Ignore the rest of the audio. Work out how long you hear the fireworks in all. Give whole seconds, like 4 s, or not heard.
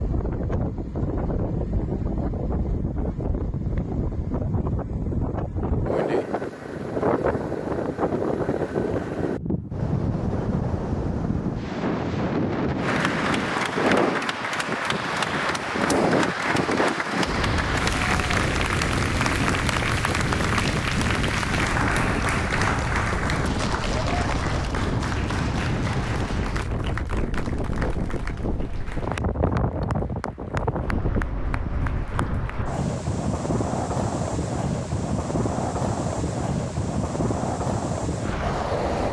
not heard.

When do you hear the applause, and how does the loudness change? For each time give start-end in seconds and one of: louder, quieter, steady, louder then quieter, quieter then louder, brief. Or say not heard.
12.8-32.6 quieter.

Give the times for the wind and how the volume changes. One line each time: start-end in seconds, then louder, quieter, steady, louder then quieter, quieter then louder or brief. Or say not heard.
0.0-39.0 steady.